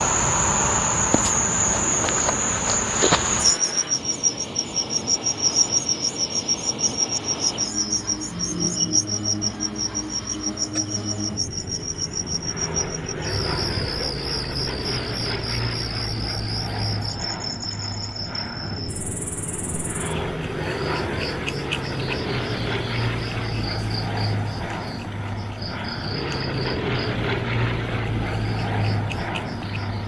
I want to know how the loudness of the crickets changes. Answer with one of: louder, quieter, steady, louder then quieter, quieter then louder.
quieter.